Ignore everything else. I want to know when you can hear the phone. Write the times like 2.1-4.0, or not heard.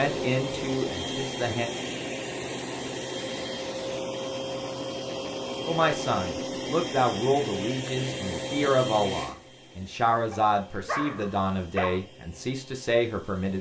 not heard.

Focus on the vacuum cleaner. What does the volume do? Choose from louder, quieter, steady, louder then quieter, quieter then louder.
quieter.